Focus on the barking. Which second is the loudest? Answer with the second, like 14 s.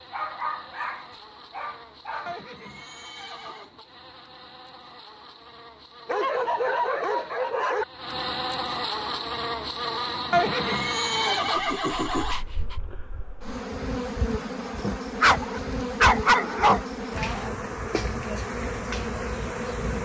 16 s.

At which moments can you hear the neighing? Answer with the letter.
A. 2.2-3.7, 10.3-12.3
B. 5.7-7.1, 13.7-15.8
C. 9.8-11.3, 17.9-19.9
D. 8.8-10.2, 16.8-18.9
A.